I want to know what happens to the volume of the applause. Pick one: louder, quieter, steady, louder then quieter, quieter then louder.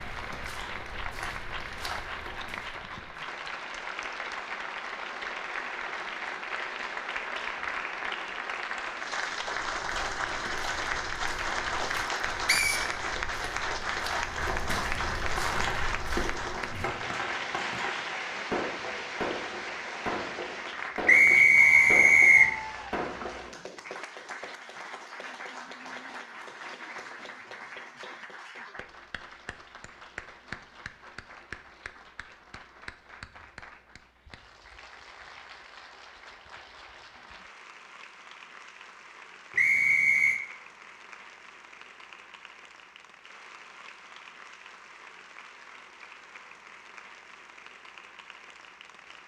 quieter.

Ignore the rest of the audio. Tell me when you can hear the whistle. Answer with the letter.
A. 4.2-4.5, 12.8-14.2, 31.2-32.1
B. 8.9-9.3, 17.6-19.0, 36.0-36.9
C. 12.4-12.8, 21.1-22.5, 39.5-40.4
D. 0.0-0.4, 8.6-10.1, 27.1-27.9
C.